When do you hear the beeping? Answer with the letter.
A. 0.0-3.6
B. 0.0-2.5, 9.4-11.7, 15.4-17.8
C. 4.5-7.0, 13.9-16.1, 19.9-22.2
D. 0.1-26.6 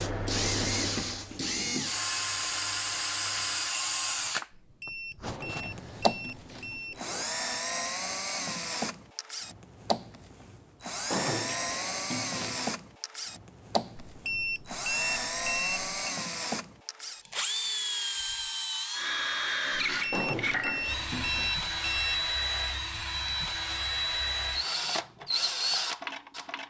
C.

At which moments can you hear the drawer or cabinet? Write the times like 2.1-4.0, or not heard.
5.2-7.2, 11.1-12.8, 20.1-21.6.